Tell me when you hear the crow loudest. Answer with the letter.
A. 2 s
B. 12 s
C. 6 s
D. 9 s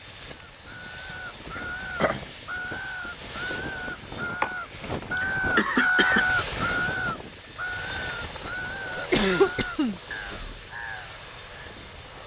C.